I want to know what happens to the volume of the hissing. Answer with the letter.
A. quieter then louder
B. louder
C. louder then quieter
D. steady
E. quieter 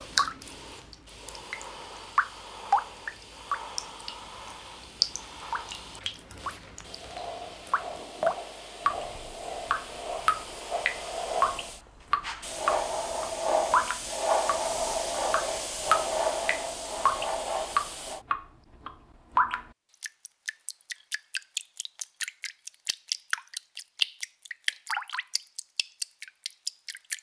B.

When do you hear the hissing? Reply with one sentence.
You can hear the hissing from 0.0 to 18.2 s.